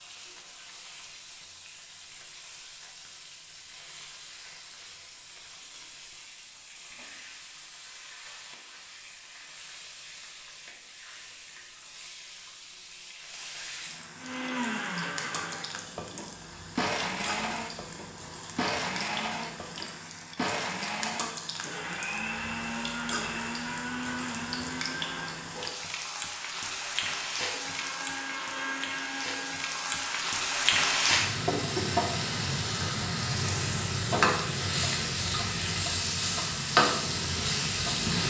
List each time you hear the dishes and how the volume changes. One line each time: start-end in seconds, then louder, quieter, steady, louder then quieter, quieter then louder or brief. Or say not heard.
not heard.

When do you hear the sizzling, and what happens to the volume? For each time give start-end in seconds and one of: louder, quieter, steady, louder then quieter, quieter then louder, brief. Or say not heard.
0.0-38.2 louder.